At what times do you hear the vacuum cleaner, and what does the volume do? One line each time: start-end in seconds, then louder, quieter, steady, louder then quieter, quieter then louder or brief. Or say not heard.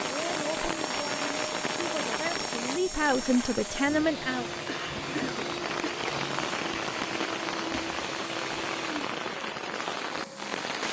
0.0-10.7 steady.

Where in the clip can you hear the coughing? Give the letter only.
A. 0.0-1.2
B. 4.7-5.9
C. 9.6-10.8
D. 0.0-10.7
B.